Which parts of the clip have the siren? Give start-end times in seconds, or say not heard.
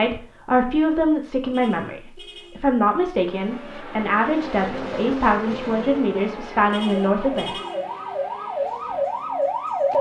6.8-9.9.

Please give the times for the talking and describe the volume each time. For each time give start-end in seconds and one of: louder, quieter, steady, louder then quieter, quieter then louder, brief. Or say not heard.
0.0-7.5 steady.